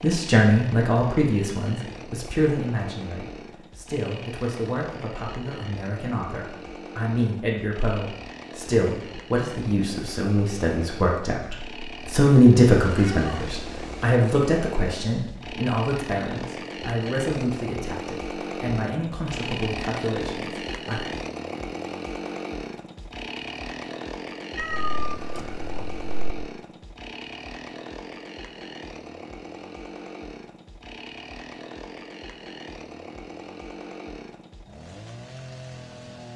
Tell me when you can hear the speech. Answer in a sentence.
You can hear the speech from 0.0 to 21.1 s.